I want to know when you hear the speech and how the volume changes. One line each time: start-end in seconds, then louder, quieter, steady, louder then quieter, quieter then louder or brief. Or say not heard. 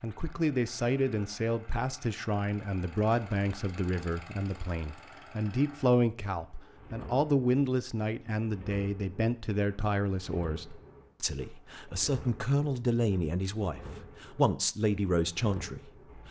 0.0-16.2 steady.